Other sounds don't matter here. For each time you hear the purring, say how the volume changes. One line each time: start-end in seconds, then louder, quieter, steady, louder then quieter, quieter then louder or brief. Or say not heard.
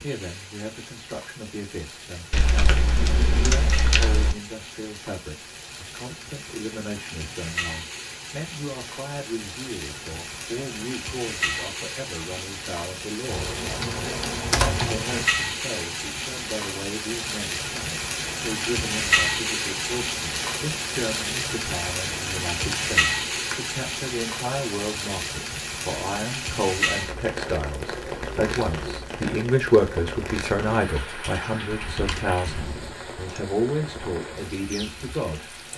not heard.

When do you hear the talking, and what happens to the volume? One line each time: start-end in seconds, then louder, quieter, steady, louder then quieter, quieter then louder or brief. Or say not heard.
0.0-35.7 louder.